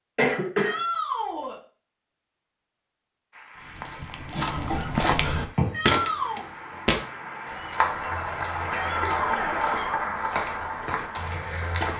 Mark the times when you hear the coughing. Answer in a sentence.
The coughing can be heard from 0.1 to 0.8 s, from 4.3 to 5.8 s and from 8.7 to 9.9 s.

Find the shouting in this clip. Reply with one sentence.
You can hear the shouting from 0.6 to 1.6 s, from 5.7 to 6.5 s and from 8.7 to 9.6 s.